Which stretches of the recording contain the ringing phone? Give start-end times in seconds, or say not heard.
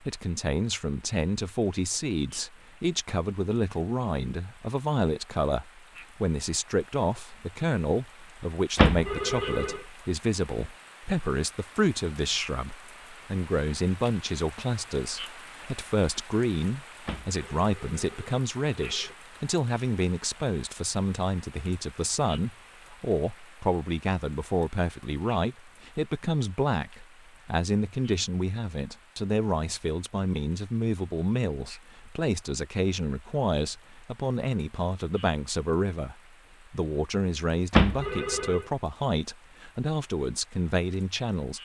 8.8-9.8, 17.1-19.1, 37.7-38.6.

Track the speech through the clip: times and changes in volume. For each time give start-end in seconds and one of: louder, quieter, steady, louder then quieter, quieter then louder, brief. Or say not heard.
0.0-41.6 steady.